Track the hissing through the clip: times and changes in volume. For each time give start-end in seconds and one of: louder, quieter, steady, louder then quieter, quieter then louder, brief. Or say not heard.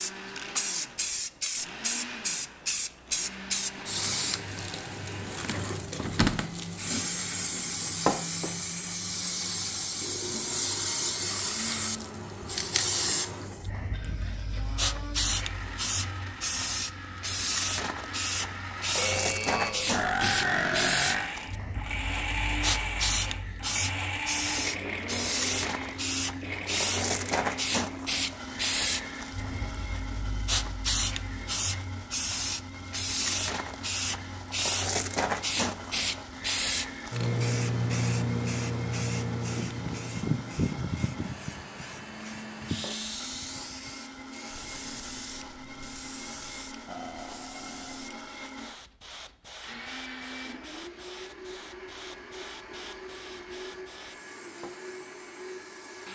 0.0-56.1 quieter.